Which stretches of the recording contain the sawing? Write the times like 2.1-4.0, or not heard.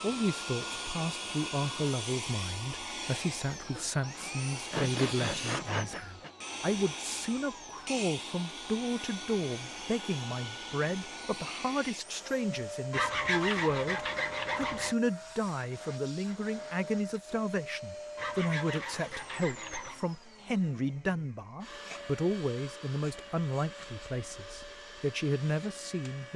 3.7-6.3, 12.9-14.9, 18.1-20.0.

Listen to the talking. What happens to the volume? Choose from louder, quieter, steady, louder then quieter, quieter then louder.
steady.